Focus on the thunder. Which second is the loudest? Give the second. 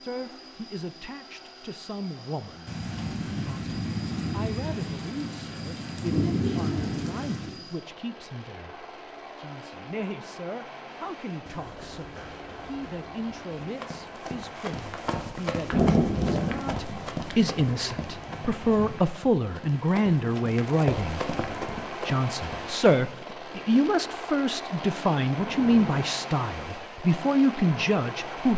16 s.